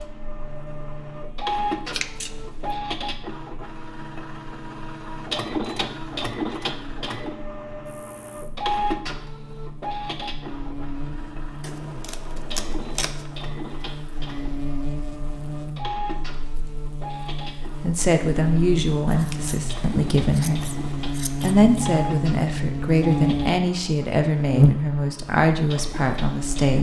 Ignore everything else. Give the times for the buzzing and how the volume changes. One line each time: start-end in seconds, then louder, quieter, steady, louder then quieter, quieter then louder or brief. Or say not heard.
0.0-26.7 louder.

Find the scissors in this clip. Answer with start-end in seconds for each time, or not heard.
1.9-2.3, 11.6-13.3, 19.1-21.6.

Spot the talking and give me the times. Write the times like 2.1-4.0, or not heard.
17.6-20.7, 21.4-26.7.